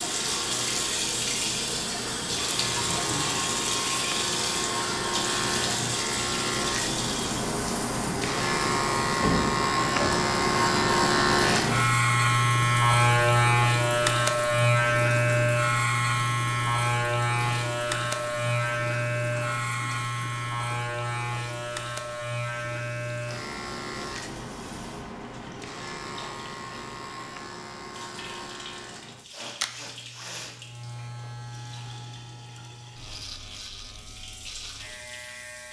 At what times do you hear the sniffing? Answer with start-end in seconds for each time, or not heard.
29.2-30.6.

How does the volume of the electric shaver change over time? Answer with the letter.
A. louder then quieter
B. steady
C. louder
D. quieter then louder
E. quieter
A.